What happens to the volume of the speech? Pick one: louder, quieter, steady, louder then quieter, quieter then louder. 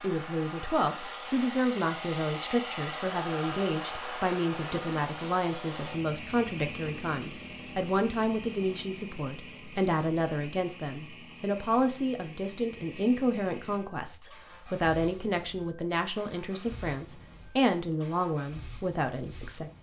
steady.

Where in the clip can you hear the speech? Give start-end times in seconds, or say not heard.
0.0-19.7.